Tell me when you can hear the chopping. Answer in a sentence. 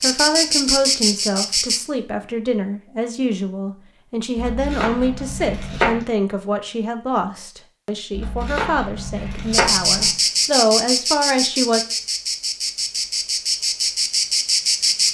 You can hear the chopping from 4.3 to 6.0 s and from 8.1 to 10.1 s.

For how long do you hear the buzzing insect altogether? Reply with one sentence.
The buzzing insect can be heard for 7 seconds in total.